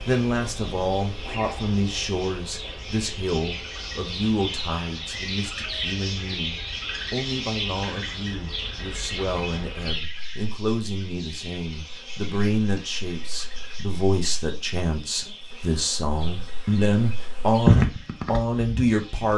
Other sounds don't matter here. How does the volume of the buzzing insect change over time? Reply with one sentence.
The volume of the buzzing insect goes down, then up.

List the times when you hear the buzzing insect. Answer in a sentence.
The buzzing insect can be heard from 0.0 to 19.3 s.